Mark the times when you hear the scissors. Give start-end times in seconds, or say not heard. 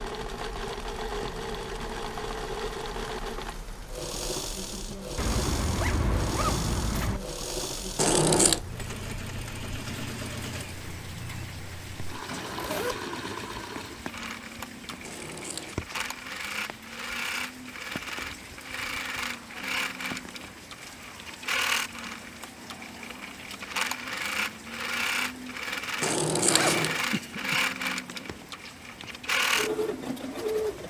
8.0-8.6, 15.0-15.8, 26.0-27.0.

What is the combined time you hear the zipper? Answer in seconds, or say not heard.
3 s.